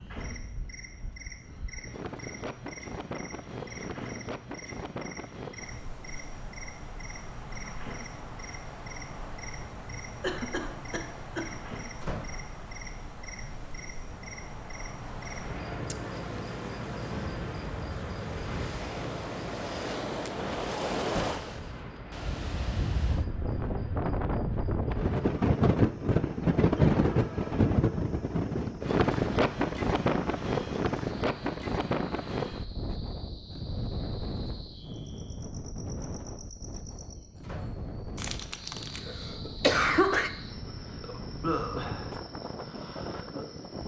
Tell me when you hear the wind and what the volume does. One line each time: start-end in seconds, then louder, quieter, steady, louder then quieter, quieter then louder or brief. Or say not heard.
0.0-43.8 louder then quieter.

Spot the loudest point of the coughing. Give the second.
40 s.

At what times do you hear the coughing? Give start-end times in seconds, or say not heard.
10.2-11.5, 38.1-40.3.